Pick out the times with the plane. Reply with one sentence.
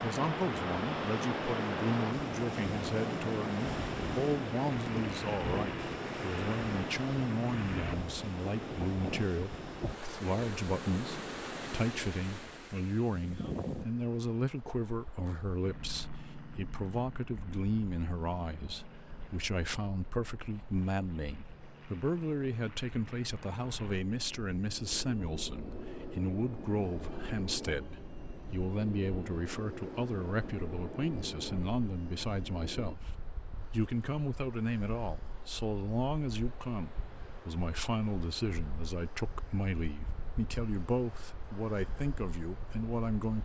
The plane can be heard from 0.0 to 8.0 s and from 15.6 to 33.0 s.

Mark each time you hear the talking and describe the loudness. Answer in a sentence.
You can hear the talking from 0.0 to 43.4 s, at a steady volume.